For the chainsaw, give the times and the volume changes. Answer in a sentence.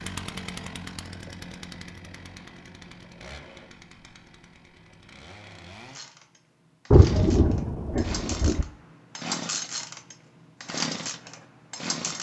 You can hear the chainsaw from 0.0 to 12.1 s, getting quieter then louder.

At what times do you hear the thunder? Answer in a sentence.
The thunder can be heard from 6.9 to 8.7 s.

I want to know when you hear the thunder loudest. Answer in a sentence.
The loudest moment of the thunder is at 7 seconds.